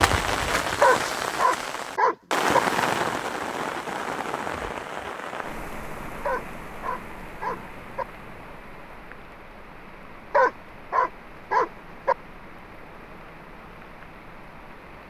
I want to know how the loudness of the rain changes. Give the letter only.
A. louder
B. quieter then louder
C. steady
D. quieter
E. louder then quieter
D.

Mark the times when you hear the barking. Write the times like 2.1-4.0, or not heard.
0.8-2.6, 6.2-8.1, 10.3-12.2.